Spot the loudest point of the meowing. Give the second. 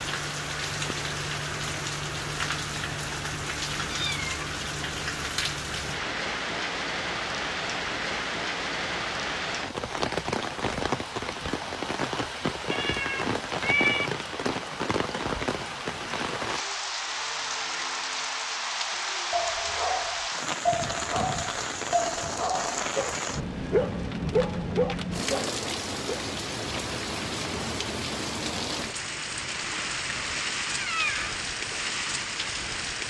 14 s.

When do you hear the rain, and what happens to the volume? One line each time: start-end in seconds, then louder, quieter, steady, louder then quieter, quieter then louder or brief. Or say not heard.
0.0-33.0 steady.